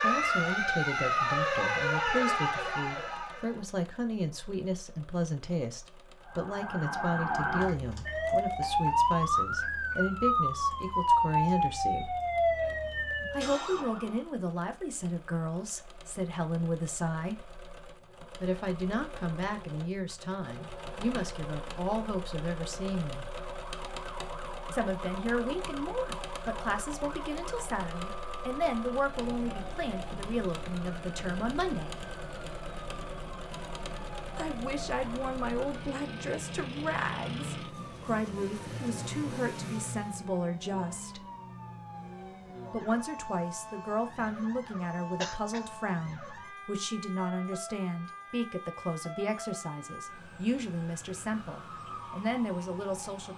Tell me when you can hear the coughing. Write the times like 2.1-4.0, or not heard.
45.2-45.6.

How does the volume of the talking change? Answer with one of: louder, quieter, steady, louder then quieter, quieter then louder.
steady.